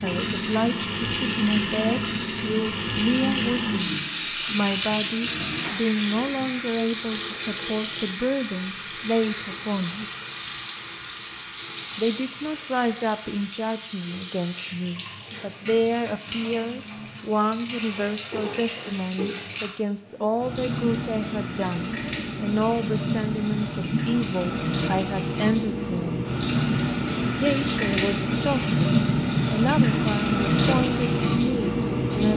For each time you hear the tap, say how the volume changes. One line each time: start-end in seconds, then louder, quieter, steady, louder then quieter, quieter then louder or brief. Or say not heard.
0.0-32.3 quieter then louder.